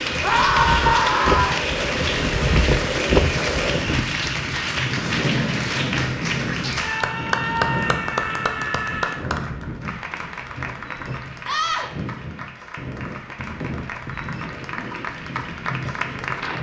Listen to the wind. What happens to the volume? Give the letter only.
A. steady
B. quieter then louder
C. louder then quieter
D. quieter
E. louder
D.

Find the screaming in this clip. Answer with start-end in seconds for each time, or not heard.
0.2-1.6, 6.8-9.2, 11.4-11.9.